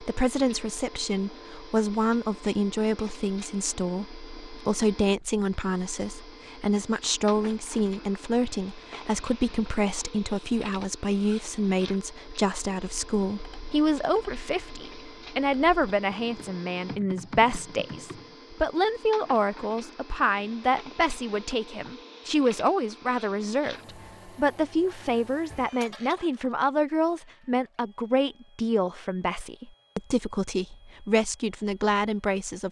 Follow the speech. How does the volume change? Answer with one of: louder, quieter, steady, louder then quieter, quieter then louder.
steady.